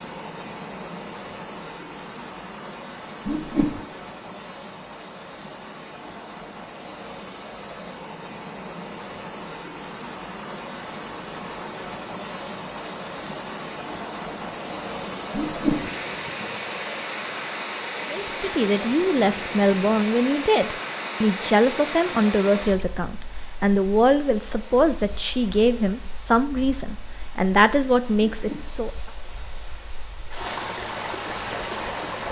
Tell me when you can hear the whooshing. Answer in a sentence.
You can hear the whooshing from 3.2 to 3.8 s, from 15.3 to 15.9 s and from 28.3 to 28.8 s.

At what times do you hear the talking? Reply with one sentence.
The talking can be heard from 18.1 to 28.9 s.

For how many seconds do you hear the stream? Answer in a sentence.
The stream can be heard for 32 seconds in total.